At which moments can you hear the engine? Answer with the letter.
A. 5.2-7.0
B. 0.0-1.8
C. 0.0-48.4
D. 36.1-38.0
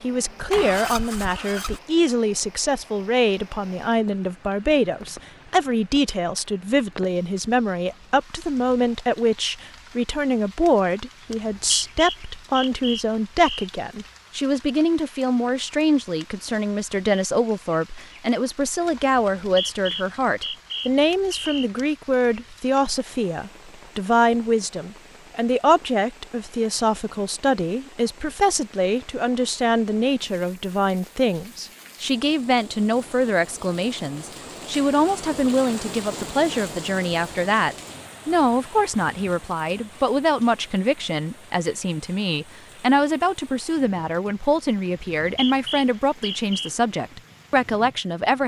B.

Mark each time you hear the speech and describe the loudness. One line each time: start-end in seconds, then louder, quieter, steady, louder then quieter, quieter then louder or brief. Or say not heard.
0.0-48.4 steady.